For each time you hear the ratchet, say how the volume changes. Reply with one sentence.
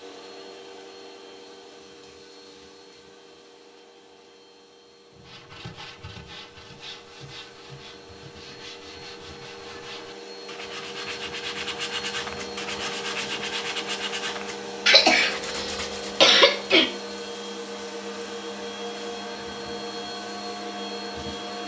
You can't hear the ratchet here.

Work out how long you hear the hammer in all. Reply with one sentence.
You can't hear the hammer here.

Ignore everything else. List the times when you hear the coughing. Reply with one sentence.
You can hear the coughing from 14.8 to 16.9 s.